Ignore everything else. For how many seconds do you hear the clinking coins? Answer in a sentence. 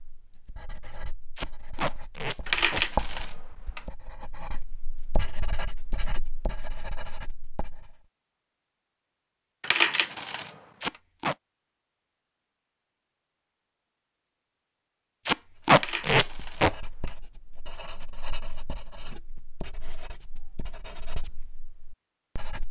The clinking coins can be heard for 4 seconds in total.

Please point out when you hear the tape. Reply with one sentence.
You can hear the tape from 1.4 to 2.9 s, from 10.8 to 11.3 s and from 15.2 to 16.8 s.